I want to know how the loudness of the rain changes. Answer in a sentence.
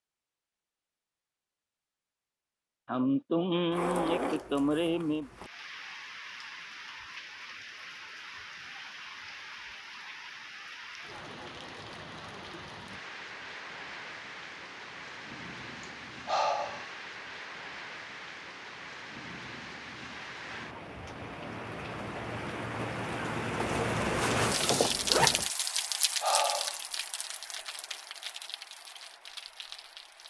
The volume of the rain goes up.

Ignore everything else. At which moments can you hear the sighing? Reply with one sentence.
The sighing can be heard from 2.9 to 5.3 s, from 15.8 to 16.9 s and from 25.8 to 26.8 s.